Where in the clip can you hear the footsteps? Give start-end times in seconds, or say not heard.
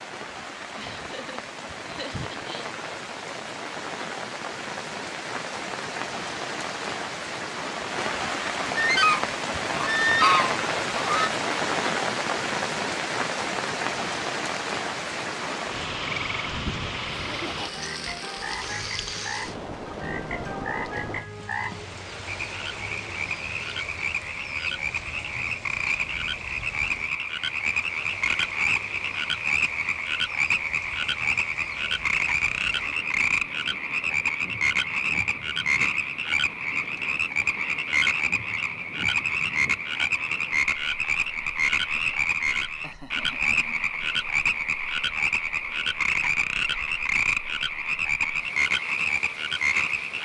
not heard.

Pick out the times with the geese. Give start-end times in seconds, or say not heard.
8.8-11.3.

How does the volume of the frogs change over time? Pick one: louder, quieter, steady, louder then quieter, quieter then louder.
louder.